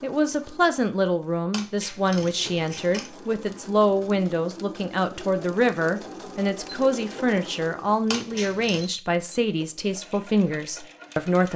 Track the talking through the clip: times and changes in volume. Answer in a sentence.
You can hear the talking from 0.0 to 11.5 s, at a steady volume.